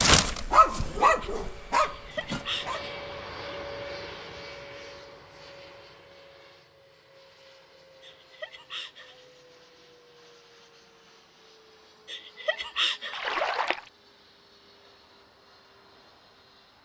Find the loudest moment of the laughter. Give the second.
13 s.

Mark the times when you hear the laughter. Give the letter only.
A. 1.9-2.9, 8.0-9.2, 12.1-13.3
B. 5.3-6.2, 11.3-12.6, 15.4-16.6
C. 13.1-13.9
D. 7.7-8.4
A.